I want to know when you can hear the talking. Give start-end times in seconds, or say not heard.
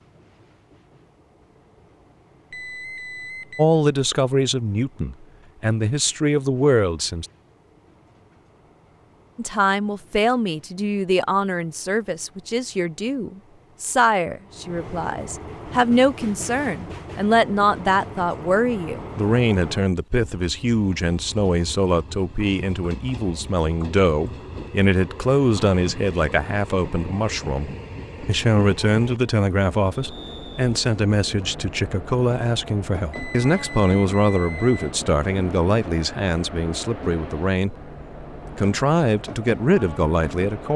3.5-7.2, 9.3-37.8, 38.5-40.7.